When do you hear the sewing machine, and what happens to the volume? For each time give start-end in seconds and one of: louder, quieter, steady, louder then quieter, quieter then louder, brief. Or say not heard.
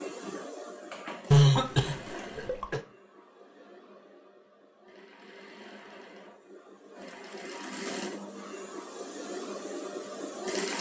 0.0-10.7 quieter then louder.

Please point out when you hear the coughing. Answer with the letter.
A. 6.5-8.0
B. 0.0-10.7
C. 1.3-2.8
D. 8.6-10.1
C.